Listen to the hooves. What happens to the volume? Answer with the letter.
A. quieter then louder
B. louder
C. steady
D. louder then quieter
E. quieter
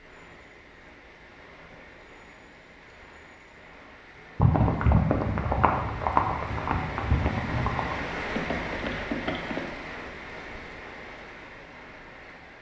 E.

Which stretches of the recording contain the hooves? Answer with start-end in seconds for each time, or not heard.
4.4-9.7.